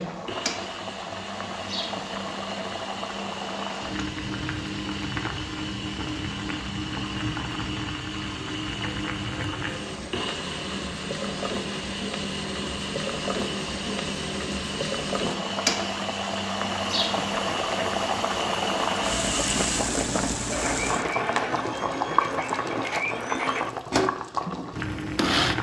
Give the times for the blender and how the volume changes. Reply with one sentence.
You can hear the blender from 0.1 to 25.5 s, getting louder.